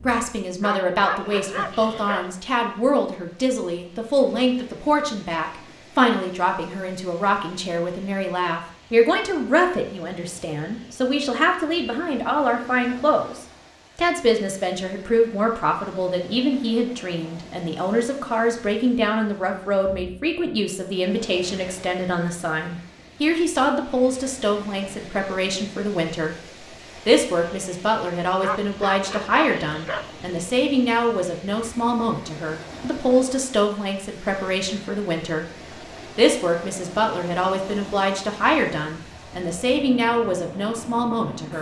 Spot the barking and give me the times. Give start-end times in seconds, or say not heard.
0.6-2.4, 28.4-30.1.